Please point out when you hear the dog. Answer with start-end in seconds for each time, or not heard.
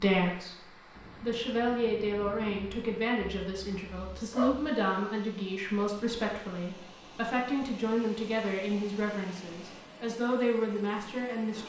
3.2-4.7.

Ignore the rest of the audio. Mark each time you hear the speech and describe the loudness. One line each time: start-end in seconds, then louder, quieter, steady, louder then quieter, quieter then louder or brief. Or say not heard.
0.0-11.6 steady.